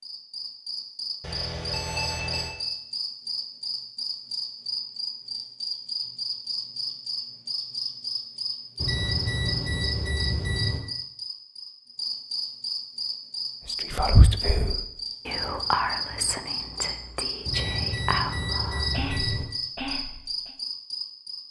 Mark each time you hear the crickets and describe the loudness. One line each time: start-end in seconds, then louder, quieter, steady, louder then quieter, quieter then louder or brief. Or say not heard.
0.0-21.4 steady.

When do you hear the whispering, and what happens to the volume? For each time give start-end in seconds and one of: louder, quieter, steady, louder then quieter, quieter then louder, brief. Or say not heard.
13.7-20.6 quieter.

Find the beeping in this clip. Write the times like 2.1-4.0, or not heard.
1.2-2.5, 8.8-10.8, 17.4-19.4.